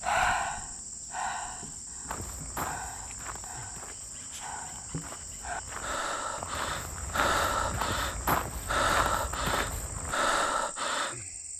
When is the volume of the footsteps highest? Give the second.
8 s.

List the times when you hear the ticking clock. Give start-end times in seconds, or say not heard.
not heard.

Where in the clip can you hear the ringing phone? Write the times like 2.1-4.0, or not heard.
not heard.